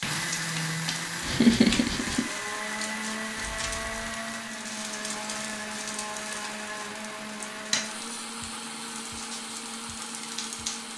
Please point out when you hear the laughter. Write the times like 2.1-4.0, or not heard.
1.2-2.2.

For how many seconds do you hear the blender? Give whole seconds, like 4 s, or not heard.
11 s.